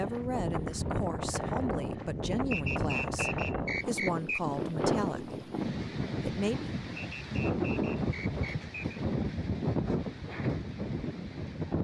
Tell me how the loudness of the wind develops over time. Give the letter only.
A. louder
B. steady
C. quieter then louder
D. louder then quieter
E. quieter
B.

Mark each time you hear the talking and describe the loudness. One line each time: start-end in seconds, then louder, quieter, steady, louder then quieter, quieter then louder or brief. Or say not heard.
0.0-5.4 steady
6.2-6.8 brief.